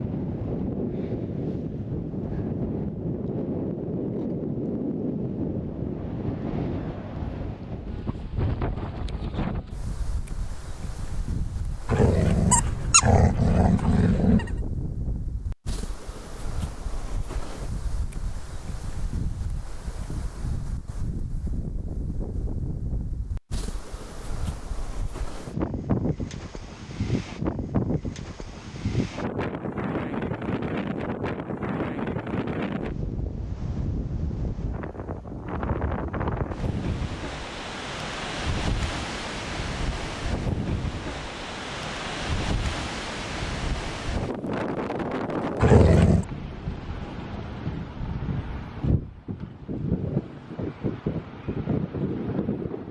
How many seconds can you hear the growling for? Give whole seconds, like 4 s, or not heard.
3 s.